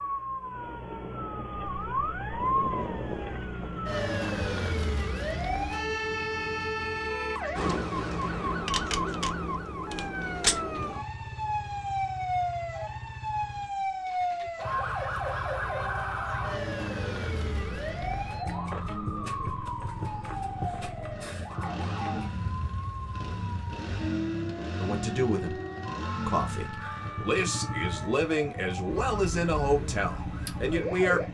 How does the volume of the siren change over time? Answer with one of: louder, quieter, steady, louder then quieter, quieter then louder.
quieter.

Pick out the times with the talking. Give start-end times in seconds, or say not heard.
24.8-25.6, 26.2-31.2.